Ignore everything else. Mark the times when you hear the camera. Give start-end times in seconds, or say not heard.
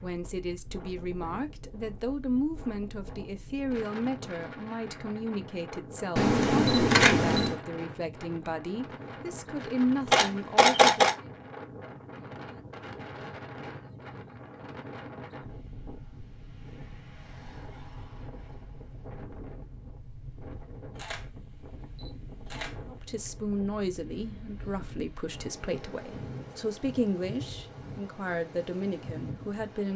6.2-7.5, 10.1-11.2, 20.9-23.2.